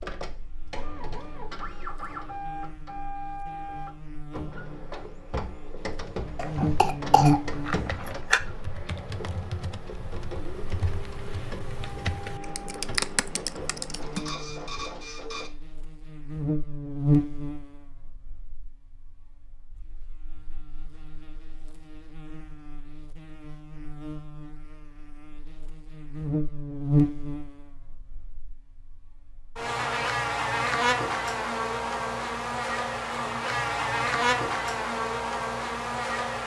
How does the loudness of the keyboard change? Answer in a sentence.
The loudness of the keyboard goes up.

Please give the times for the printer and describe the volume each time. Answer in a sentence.
The printer can be heard from 0.0 to 15.5 s, at a steady volume.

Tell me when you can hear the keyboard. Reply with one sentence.
The keyboard can be heard from 5.8 to 14.3 s.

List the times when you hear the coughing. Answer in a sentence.
You can hear the coughing from 6.3 to 8.4 s.